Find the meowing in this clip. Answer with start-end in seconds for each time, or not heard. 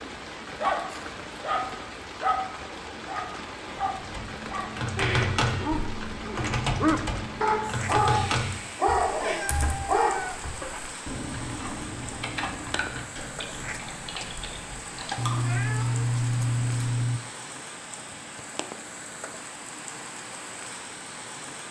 5.0-5.5, 9.2-10.4, 15.2-17.2.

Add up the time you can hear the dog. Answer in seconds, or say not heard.
10 s.